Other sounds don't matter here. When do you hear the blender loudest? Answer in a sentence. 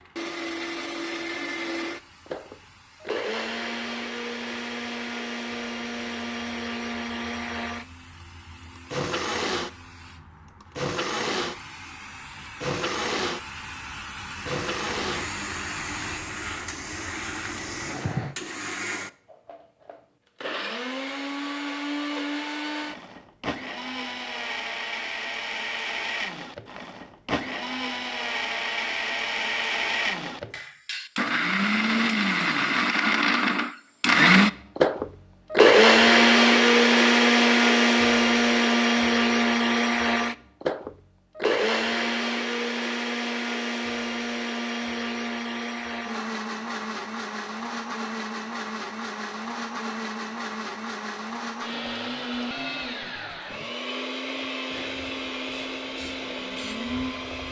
The volume of the blender peaks at 36 seconds.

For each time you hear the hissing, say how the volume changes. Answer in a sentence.
You can hear the hissing from 0.0 to 18.4 s, getting louder; and briefly from 54.6 to 57.4 s.